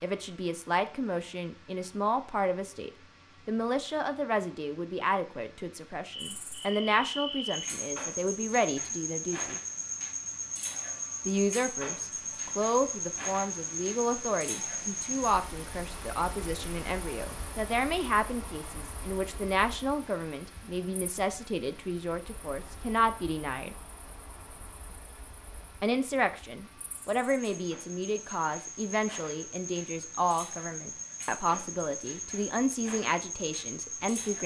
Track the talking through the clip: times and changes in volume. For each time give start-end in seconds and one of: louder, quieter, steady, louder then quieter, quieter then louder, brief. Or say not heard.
0.0-9.6 steady
11.2-23.8 steady
25.8-34.4 steady.